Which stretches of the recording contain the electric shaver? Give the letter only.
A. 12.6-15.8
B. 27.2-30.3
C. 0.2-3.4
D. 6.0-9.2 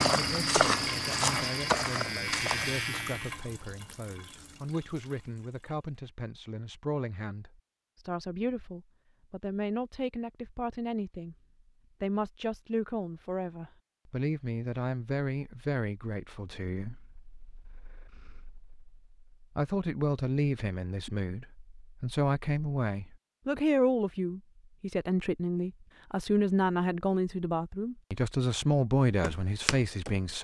C.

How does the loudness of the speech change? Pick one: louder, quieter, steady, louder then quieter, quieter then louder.
louder.